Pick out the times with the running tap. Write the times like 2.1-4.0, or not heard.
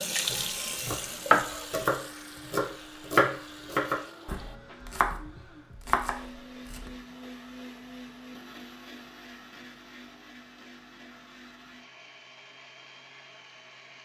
0.0-4.6.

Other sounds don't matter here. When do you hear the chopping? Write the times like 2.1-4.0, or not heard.
0.3-7.0.